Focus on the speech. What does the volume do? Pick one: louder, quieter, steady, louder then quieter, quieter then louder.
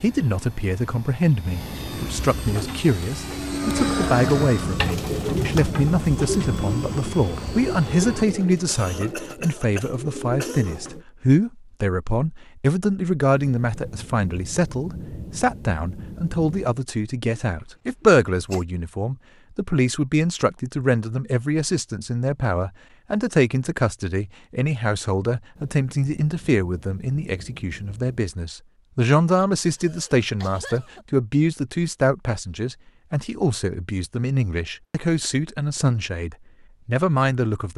steady.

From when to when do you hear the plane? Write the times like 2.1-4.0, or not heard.
0.0-8.2.